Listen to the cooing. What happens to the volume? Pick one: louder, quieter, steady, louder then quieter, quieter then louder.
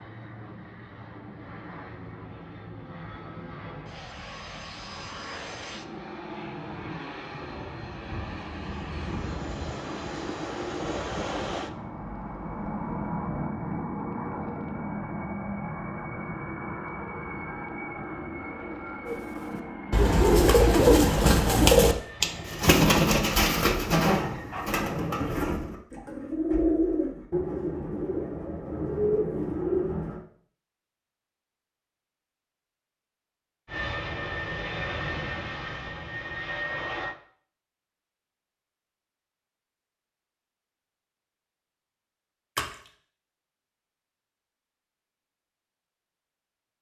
quieter.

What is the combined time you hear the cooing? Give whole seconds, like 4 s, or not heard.
11 s.